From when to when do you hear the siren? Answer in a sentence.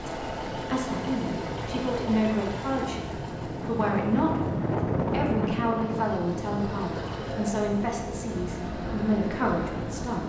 The siren can't be heard in this clip.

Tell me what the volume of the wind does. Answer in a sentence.
The loudness of the wind goes up, then down.